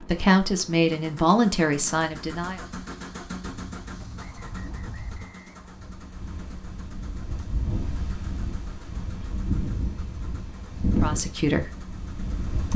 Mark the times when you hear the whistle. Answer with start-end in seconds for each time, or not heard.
4.2-5.8.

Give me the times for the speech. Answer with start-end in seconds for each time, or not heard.
0.0-2.6, 10.9-11.7.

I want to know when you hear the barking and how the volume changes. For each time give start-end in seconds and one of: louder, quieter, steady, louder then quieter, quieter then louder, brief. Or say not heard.
not heard.